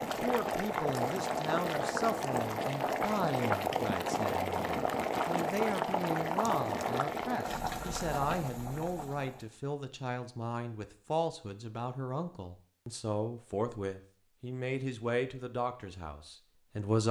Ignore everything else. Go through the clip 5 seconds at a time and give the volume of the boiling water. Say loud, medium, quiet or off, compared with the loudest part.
loud, loud, off, off.